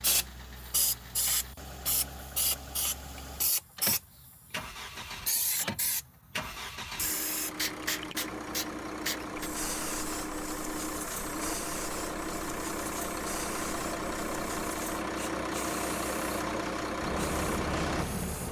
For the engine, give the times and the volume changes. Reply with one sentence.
The engine can be heard from 0.0 to 18.4 s, getting louder.